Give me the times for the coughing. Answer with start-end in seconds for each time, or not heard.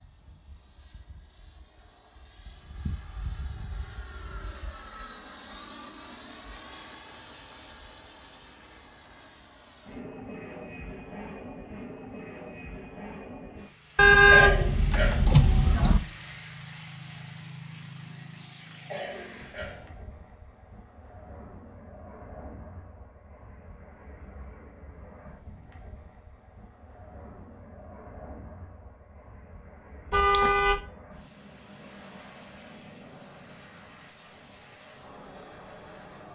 14.3-15.3, 18.9-19.9.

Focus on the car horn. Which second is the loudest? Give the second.
14 s.